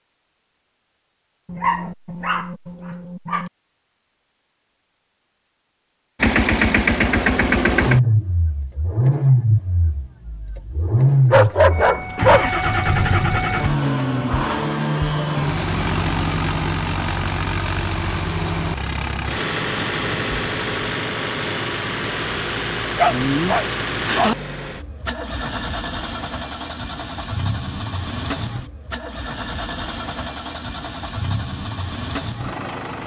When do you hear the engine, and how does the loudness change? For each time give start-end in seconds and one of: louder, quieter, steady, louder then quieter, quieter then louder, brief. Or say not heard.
6.2-33.0 quieter.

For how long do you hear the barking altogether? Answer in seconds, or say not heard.
5 s.